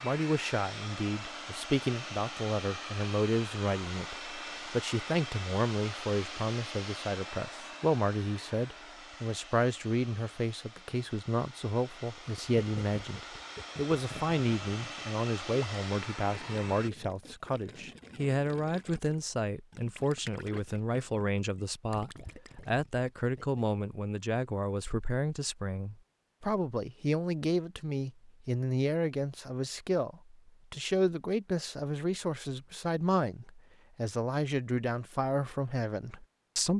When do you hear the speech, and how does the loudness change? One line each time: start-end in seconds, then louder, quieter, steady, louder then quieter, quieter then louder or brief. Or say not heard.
0.0-36.7 steady.